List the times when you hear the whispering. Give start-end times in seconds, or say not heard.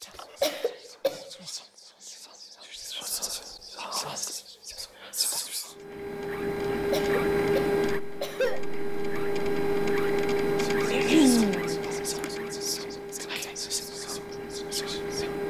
0.0-5.8, 10.6-15.3.